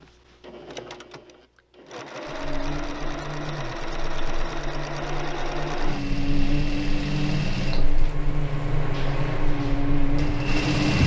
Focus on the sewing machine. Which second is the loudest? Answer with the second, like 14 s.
11 s.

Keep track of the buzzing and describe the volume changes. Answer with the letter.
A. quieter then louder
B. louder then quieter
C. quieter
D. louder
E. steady
D.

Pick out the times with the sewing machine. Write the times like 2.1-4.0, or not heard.
0.0-11.0.